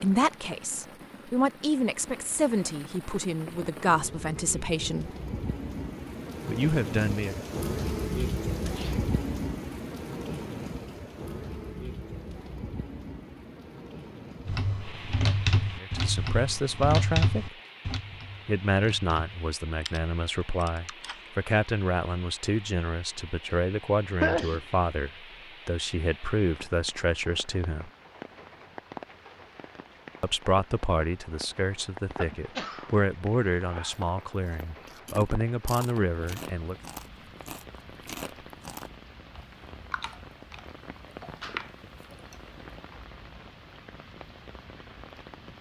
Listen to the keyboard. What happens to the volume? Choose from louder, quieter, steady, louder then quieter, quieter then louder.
quieter.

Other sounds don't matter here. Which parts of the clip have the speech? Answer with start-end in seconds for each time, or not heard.
0.0-5.1, 6.5-7.3, 15.8-17.6, 18.4-27.9, 30.2-36.8.